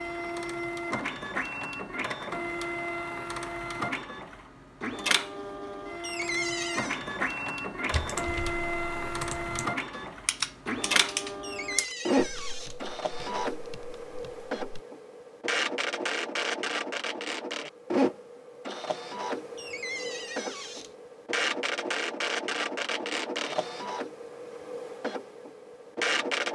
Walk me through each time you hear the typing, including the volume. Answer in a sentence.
The typing can be heard from 7.9 to 14.8 s, getting louder then quieter.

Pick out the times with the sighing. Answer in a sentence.
You can't hear the sighing here.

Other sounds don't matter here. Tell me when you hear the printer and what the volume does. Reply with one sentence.
The printer can be heard from 0.0 to 26.5 s, at a steady volume.